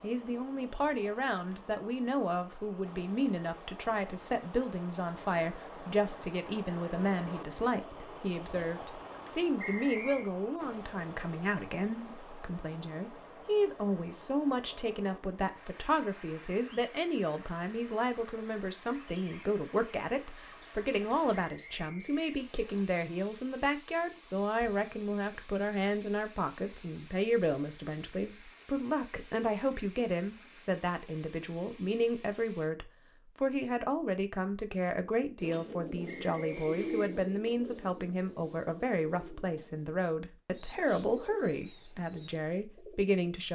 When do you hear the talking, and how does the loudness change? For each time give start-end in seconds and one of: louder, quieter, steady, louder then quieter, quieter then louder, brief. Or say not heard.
0.0-43.5 steady.